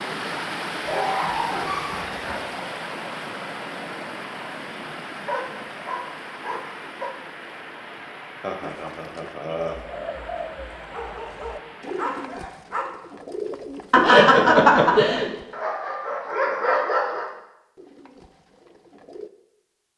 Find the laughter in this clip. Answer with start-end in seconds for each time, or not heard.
1.4-2.5, 8.2-9.8, 13.9-15.3.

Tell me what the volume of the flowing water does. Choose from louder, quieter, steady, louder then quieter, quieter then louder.
quieter.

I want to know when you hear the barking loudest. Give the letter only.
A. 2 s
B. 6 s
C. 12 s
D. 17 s
D.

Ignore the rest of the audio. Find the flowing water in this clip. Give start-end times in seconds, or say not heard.
0.0-12.3.